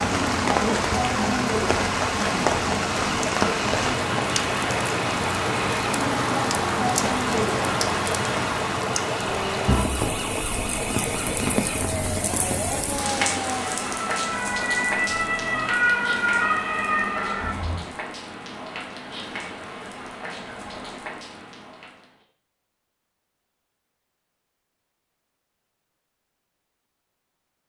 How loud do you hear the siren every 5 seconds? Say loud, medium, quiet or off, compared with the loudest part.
medium, medium, medium, loud, off, off.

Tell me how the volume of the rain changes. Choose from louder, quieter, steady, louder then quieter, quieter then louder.
quieter.